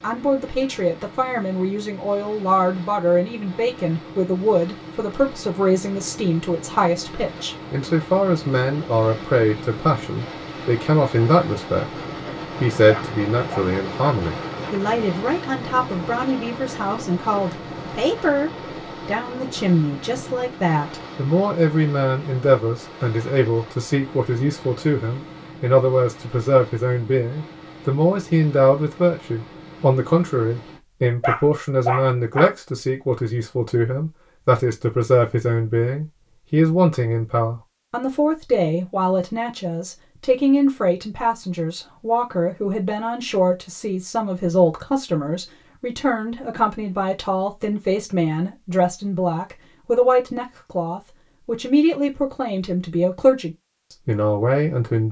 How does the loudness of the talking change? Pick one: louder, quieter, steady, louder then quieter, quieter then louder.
steady.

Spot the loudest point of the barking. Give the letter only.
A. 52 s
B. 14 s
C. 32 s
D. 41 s
C.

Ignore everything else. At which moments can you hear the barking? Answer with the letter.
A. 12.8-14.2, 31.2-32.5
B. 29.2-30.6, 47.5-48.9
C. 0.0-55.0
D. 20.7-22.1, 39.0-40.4
A.